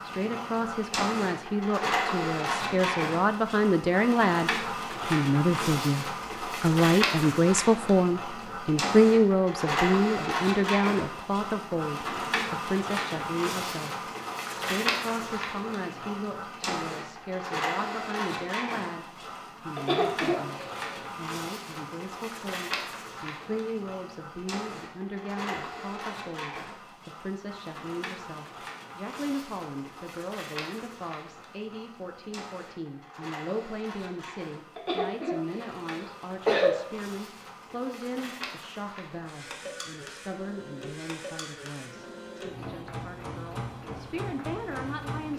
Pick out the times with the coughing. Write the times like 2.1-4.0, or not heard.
19.8-21.1, 34.8-36.8.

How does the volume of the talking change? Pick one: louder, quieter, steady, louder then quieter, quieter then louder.
quieter.